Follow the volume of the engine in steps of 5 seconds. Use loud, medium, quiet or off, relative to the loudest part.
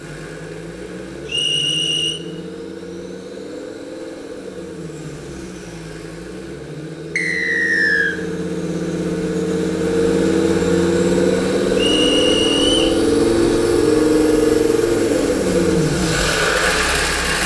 quiet, medium, loud, loud.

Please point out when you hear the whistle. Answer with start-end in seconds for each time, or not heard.
1.2-2.2, 7.2-8.2, 11.8-13.0.